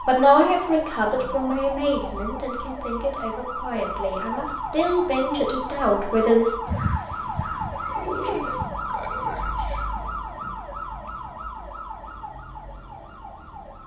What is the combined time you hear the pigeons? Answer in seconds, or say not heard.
2 s.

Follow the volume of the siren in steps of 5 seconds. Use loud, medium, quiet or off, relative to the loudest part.
loud, loud, medium.